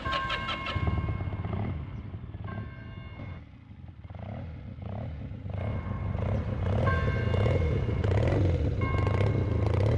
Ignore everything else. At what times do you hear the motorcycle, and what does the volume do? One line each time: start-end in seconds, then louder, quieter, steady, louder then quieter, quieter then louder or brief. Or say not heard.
0.0-9.9 quieter then louder.